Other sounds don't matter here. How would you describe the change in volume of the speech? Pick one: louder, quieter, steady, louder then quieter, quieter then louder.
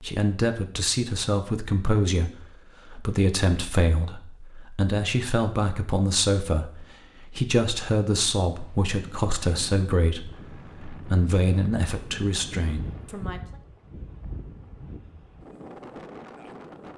steady.